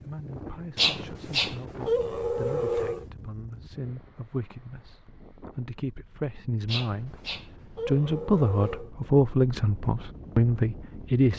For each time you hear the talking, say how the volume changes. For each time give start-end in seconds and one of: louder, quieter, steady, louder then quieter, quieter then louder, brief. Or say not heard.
0.0-11.3 louder.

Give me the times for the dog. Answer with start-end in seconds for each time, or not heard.
0.8-3.0, 6.7-8.9.